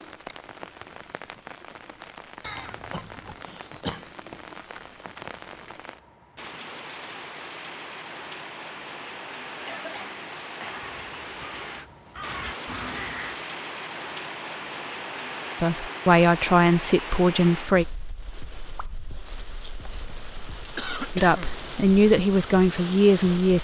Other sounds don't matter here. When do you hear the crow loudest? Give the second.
13 s.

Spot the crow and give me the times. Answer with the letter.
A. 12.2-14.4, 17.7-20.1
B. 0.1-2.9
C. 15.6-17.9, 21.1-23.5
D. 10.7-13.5
D.